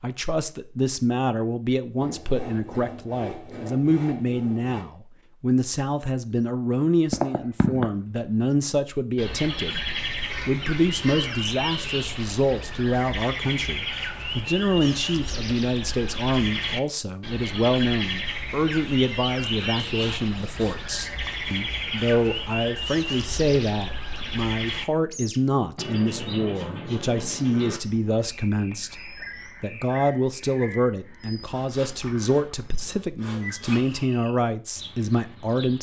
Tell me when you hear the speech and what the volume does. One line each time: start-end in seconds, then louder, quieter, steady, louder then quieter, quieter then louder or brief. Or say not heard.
0.0-35.7 steady.